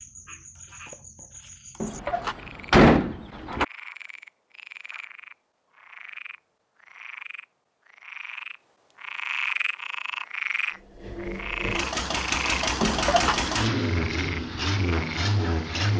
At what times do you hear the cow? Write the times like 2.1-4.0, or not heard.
not heard.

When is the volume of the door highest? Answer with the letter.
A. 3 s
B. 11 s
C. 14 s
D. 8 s
A.